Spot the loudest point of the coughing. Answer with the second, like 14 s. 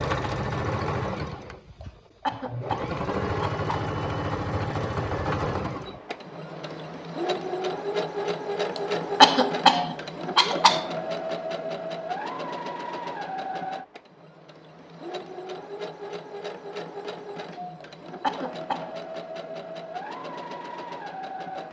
9 s.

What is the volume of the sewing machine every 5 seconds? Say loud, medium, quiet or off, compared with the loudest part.
loud, loud, loud, medium, medium.